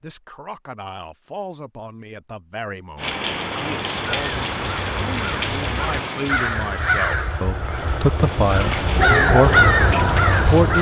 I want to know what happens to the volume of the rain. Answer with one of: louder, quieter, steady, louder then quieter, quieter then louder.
quieter then louder.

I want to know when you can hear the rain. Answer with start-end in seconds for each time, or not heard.
3.0-10.7.